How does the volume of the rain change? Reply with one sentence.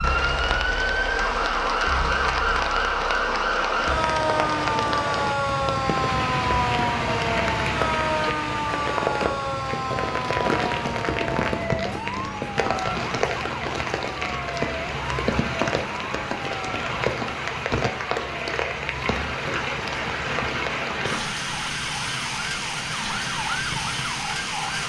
The volume of the rain stays about the same.